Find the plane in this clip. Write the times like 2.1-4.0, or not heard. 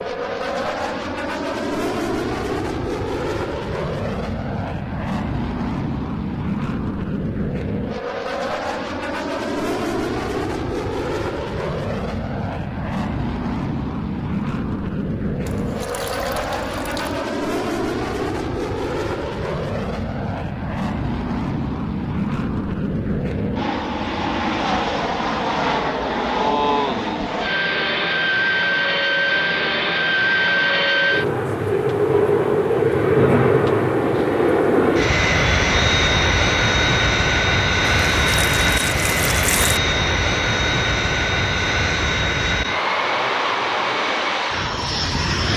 0.0-45.5.